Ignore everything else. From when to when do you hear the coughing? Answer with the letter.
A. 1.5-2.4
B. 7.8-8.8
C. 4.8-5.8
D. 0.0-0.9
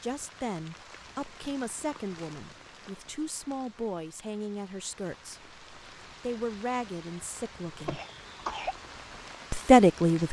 B.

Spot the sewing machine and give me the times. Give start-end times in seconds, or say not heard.
not heard.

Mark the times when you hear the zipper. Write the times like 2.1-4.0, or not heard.
not heard.